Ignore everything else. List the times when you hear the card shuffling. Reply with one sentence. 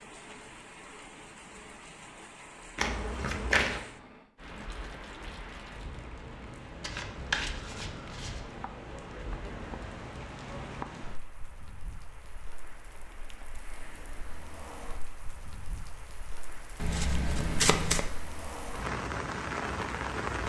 The card shuffling can be heard from 2.8 to 3.9 s, from 6.8 to 8.4 s and from 16.8 to 18.1 s.